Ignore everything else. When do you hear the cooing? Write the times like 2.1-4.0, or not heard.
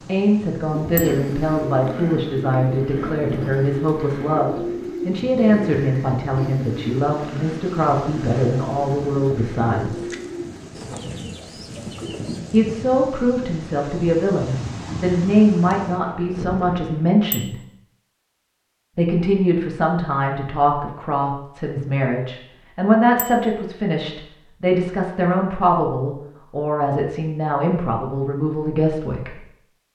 0.7-12.4.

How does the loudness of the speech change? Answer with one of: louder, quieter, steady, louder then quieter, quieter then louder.
steady.